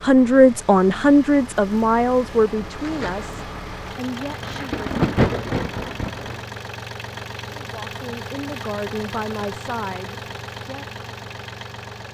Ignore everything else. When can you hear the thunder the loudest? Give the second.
5 s.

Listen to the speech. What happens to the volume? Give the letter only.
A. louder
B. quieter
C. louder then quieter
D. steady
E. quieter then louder
B.